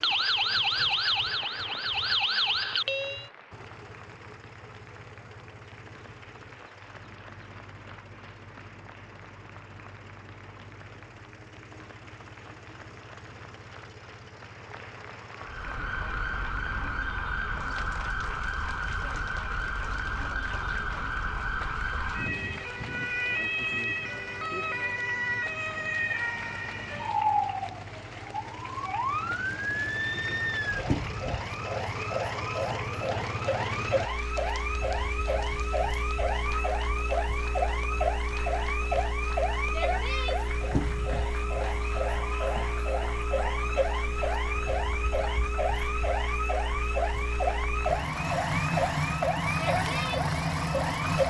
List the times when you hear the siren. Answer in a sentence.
You can hear the siren from 0.0 to 3.2 s and from 15.3 to 51.2 s.